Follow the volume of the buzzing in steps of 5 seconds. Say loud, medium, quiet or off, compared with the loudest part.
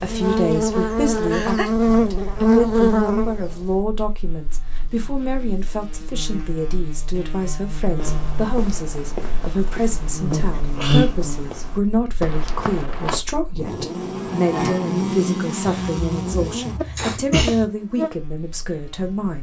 loud, quiet, loud, medium.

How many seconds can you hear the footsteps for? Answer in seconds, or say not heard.
5 s.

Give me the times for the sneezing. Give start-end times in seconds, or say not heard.
0.5-1.7, 10.5-11.1, 15.7-17.6.